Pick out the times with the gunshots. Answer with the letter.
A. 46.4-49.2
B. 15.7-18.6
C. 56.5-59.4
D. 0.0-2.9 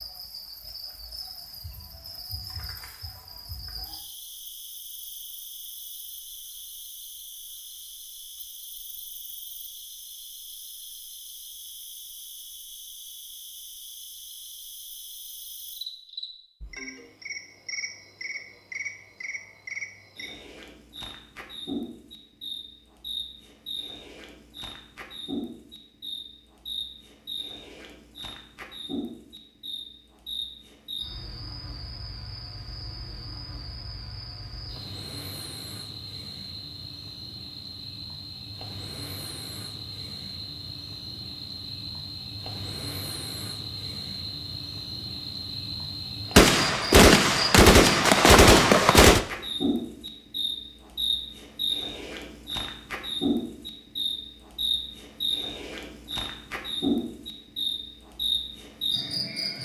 A.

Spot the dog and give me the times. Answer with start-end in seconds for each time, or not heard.
not heard.